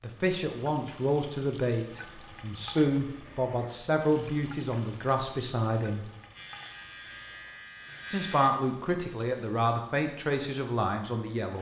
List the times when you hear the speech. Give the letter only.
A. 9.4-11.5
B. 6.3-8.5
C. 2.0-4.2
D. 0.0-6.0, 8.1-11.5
D.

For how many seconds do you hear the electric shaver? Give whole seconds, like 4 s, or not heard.
2 s.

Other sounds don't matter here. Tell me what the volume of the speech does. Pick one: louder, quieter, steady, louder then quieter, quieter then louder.
steady.